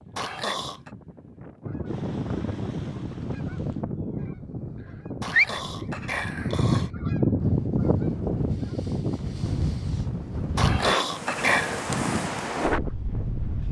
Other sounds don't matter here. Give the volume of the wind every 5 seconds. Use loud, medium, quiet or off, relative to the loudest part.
quiet, medium, loud.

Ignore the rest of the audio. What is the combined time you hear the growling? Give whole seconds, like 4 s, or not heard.
4 s.